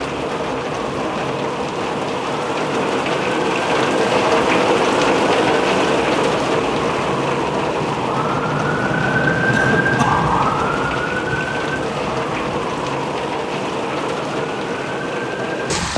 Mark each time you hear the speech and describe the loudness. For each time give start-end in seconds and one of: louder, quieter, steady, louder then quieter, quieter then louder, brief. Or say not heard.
not heard.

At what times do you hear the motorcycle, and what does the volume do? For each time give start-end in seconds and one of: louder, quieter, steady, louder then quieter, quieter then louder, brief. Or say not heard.
not heard.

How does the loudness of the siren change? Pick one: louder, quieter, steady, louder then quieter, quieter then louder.
louder then quieter.